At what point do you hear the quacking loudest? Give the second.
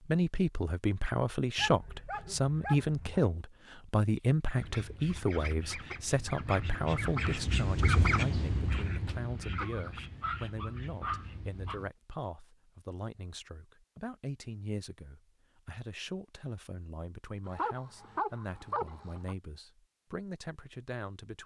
8 s.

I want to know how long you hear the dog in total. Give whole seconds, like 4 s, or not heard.
6 s.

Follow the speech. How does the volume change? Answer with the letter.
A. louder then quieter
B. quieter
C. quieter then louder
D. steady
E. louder
B.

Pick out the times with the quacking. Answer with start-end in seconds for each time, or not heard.
4.5-11.9.